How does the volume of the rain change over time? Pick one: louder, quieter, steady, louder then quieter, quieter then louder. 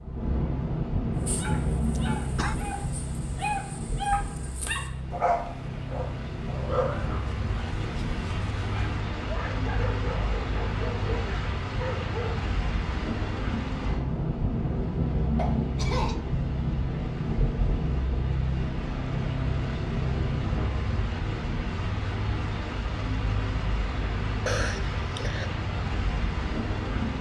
steady.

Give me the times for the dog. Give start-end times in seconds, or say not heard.
1.2-12.4.